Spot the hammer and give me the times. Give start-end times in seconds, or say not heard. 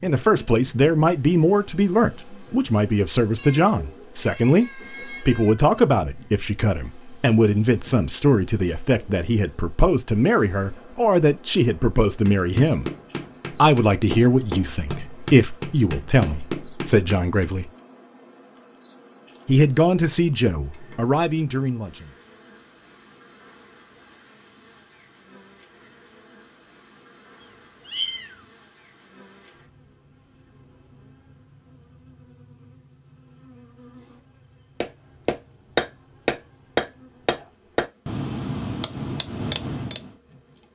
12.1-17.5, 34.8-40.1.